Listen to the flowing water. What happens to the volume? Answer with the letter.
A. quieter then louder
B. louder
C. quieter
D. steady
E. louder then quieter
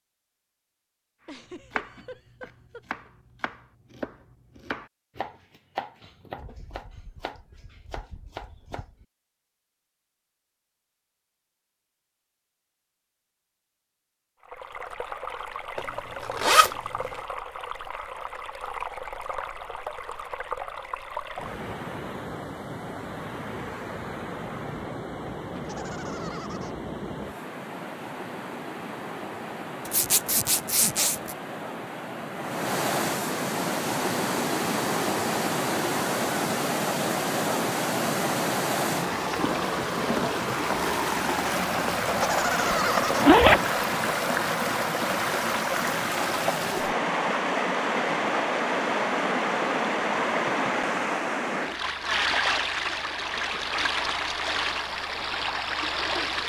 B.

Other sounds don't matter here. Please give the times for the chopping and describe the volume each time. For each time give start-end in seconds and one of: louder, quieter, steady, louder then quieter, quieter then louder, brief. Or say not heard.
1.6-9.1 louder then quieter.